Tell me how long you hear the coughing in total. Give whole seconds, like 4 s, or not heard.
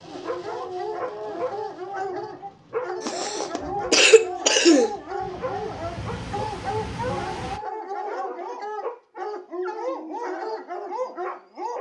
2 s.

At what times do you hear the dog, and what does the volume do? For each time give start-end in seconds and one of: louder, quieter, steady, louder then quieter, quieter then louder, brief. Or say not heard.
0.0-11.7 steady.